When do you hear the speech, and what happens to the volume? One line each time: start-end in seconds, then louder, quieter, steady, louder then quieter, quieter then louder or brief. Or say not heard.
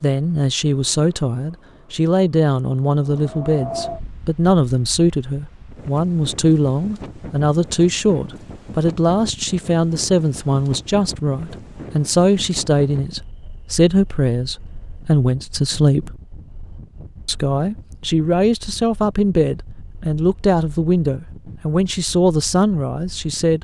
0.0-16.1 steady
17.2-23.6 steady.